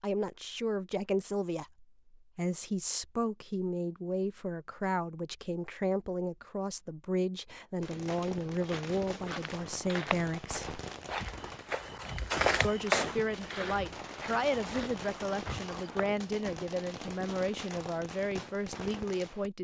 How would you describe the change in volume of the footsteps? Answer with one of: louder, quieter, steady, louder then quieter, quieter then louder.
louder then quieter.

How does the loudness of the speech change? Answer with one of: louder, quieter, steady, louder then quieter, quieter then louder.
steady.